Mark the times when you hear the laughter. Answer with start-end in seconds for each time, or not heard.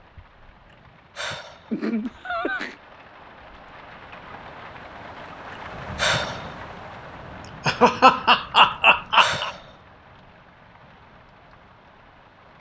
1.7-2.8, 7.7-9.5.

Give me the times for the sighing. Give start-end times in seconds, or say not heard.
0.7-1.7, 5.5-6.5, 8.7-9.7.